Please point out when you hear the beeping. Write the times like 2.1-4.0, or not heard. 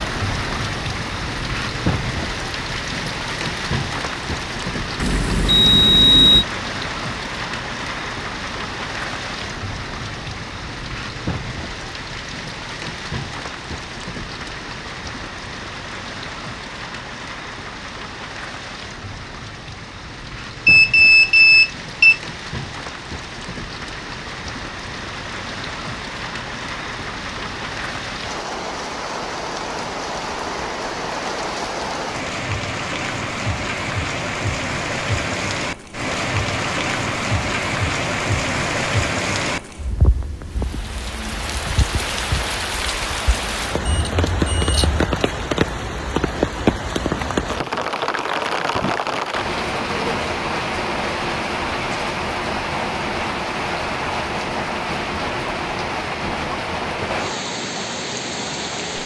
5.0-6.5, 20.6-22.2, 43.9-45.1.